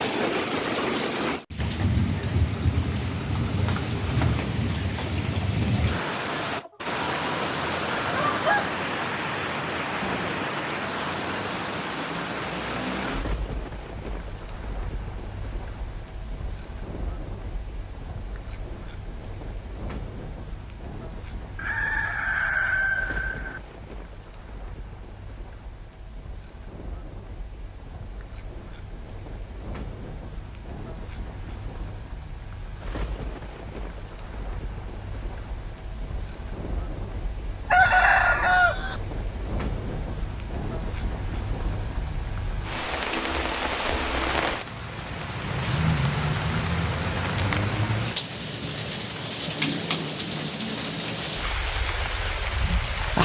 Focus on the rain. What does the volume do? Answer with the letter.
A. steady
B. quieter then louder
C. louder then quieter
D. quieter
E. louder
B.